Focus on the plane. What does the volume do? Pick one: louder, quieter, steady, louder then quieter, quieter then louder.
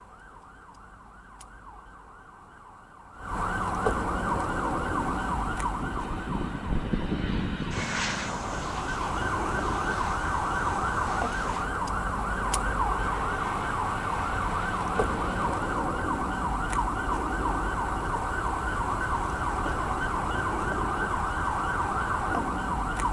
quieter.